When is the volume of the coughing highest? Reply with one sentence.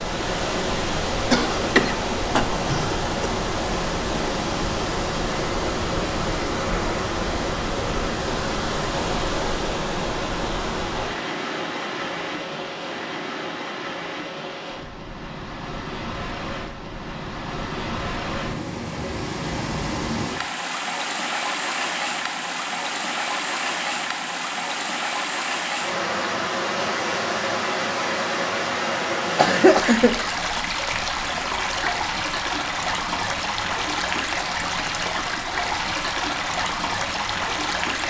The loudest moment of the coughing is at 30 seconds.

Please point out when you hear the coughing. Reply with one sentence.
The coughing can be heard from 1.3 to 3.0 s and from 29.4 to 30.2 s.